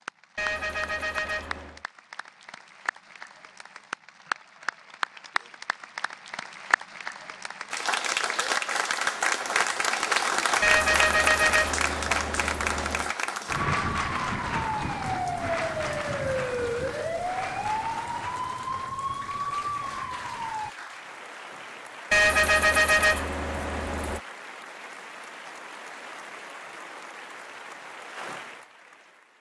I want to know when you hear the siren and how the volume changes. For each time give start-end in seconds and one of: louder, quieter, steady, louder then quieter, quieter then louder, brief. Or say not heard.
13.4-20.8 steady.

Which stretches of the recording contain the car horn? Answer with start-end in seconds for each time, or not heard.
0.3-1.8, 10.6-13.2, 22.1-24.2.